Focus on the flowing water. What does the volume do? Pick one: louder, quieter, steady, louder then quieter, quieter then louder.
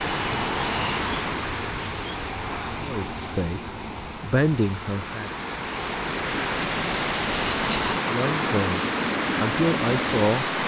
quieter then louder.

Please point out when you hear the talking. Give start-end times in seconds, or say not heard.
2.8-5.3, 8.0-10.4.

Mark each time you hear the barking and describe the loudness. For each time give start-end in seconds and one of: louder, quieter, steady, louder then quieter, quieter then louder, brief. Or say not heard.
not heard.